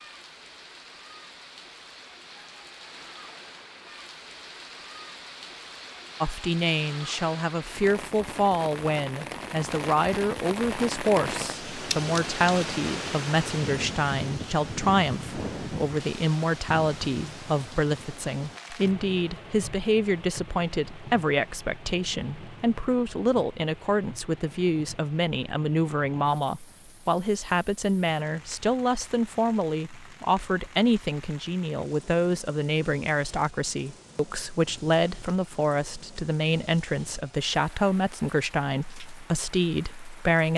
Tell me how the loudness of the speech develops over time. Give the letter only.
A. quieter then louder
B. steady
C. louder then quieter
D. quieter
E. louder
B.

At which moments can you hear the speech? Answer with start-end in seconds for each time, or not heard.
6.2-40.5.